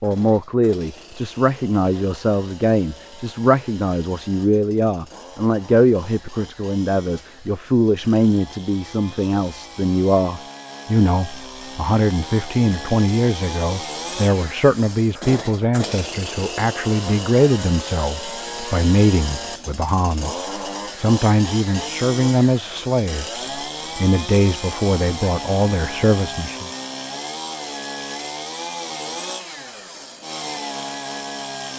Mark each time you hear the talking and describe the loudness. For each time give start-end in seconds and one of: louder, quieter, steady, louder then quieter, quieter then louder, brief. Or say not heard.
0.0-26.7 steady.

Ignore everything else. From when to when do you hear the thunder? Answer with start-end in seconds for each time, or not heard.
not heard.